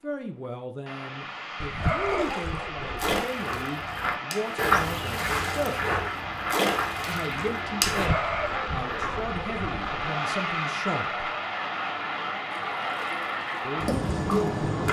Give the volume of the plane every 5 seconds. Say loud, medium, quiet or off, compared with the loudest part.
medium, loud, loud.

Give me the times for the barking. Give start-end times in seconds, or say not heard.
1.6-3.2, 7.9-9.8.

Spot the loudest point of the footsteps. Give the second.
5 s.